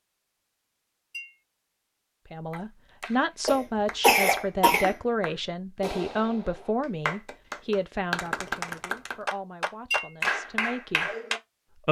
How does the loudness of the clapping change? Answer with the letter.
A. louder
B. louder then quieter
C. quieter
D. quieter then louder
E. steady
A.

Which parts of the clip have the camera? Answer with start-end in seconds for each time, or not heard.
not heard.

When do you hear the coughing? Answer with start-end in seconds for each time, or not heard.
3.5-5.0.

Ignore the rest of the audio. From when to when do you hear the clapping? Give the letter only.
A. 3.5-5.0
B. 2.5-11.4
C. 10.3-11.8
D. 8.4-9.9
B.